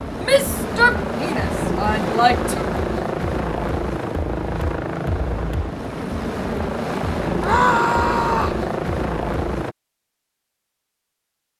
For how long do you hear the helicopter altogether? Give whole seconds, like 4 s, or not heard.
10 s.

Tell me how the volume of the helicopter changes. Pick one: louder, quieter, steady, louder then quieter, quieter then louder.
steady.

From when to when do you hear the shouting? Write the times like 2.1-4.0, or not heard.
0.2-2.6, 7.4-8.6.